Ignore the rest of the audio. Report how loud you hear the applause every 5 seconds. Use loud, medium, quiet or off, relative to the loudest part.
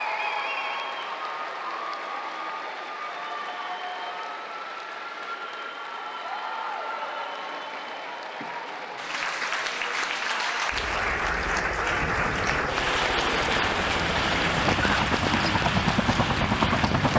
medium, medium, loud, loud.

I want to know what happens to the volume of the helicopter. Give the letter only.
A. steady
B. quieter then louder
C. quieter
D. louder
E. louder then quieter
D.